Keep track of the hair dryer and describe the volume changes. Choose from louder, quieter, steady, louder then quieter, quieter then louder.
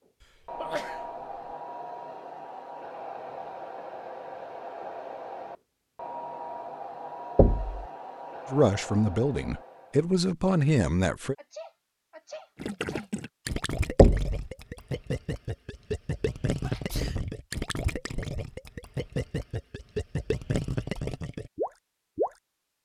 steady.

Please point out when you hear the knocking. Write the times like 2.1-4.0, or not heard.
7.3-7.8, 13.9-14.3.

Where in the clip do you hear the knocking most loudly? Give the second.
14 s.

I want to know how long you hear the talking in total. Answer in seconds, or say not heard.
3 s.